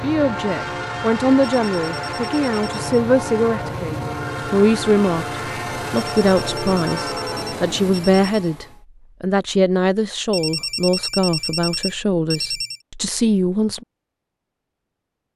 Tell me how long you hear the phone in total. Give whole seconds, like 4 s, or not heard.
6 s.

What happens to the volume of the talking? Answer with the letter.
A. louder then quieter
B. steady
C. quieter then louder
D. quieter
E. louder
B.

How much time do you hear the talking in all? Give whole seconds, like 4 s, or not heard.
14 s.